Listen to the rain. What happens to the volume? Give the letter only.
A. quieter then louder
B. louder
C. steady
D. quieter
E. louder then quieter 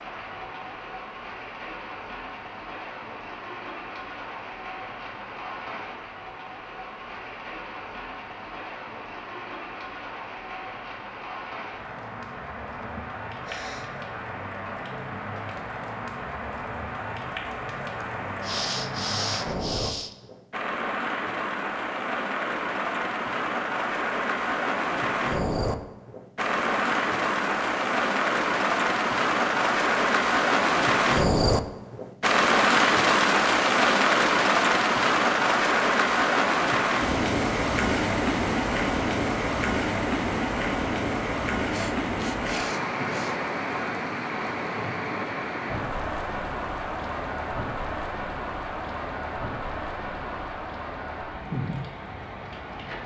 E.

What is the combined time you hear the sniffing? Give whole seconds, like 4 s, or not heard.
5 s.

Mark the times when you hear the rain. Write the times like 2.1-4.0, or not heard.
0.0-53.0.